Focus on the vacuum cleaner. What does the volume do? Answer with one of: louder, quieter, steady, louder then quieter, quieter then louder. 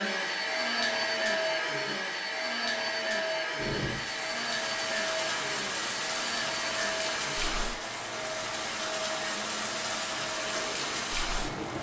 quieter.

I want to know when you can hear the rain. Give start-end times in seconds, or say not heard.
3.5-11.7.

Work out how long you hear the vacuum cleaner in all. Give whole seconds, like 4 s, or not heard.
12 s.